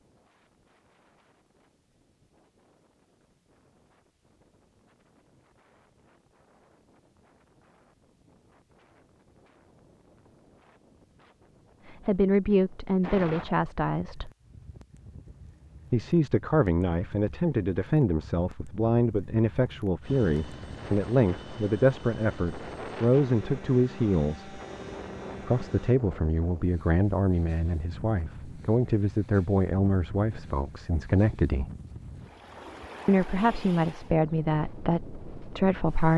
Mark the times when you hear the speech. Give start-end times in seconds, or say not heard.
11.8-14.3, 15.9-24.6, 25.4-31.7, 33.0-36.1.